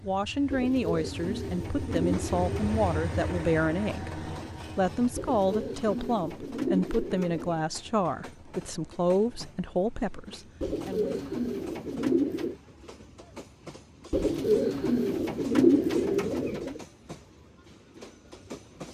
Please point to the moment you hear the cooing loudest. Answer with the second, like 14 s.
16 s.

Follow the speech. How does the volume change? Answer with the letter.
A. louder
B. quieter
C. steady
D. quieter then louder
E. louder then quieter
C.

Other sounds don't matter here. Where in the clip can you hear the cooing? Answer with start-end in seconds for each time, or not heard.
0.5-2.9, 5.2-7.6, 10.6-12.6, 14.1-16.8.